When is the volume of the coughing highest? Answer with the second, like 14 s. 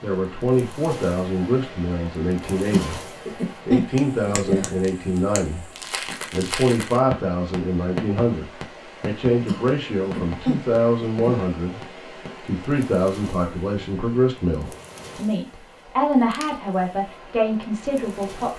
4 s.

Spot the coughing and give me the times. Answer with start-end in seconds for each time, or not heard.
2.7-4.7, 9.4-11.4.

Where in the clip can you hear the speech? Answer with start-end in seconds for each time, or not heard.
0.0-3.0, 3.6-5.7, 6.3-11.8, 12.4-18.5.